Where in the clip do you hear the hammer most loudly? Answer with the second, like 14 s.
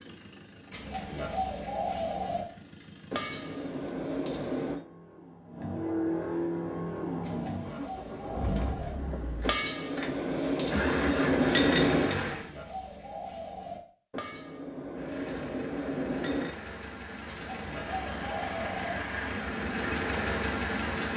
12 s.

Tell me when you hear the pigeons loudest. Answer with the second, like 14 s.
2 s.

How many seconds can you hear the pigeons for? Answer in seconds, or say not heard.
7 s.